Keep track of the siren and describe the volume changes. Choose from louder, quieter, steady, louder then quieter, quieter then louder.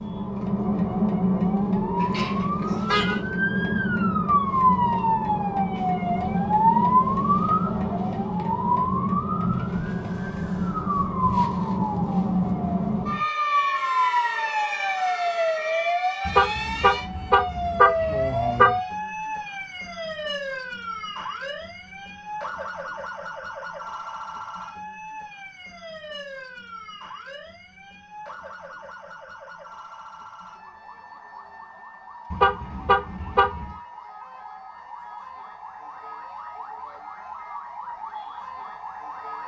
quieter.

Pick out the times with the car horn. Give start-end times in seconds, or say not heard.
1.9-3.2, 16.2-18.8, 32.3-33.8.